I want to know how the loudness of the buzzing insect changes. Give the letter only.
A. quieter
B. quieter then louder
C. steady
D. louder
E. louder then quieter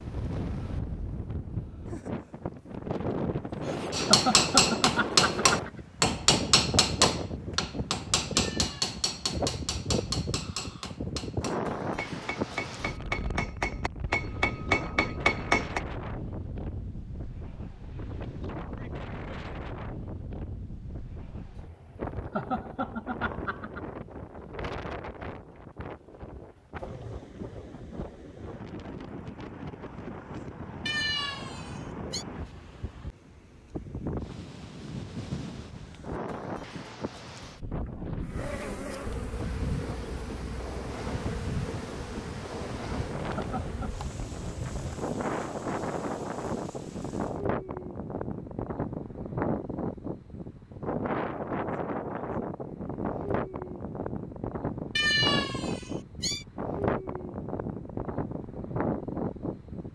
A.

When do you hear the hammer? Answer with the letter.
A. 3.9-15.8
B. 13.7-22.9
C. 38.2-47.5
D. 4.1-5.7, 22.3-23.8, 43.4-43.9
A.